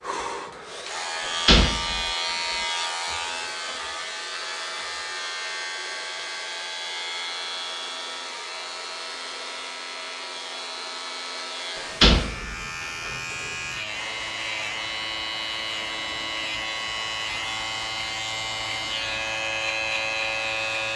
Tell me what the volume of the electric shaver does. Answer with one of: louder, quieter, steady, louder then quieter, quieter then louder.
quieter then louder.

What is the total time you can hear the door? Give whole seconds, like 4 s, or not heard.
3 s.